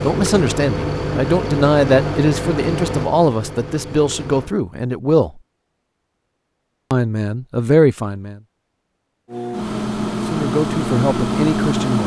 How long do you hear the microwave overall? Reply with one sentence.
You can hear the microwave for 7 seconds altogether.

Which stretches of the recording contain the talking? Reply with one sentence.
The talking can be heard from 0.0 to 5.4 s, from 6.9 to 8.4 s and from 10.1 to 12.0 s.